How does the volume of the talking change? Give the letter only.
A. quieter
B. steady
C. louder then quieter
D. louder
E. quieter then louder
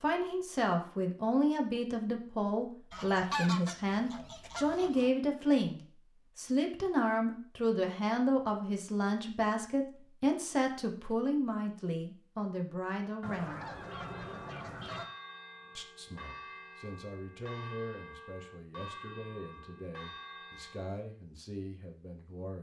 A.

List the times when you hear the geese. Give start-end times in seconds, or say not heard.
2.9-5.1, 13.2-15.1.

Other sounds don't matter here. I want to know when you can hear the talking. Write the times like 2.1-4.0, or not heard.
0.0-13.7, 15.8-22.5.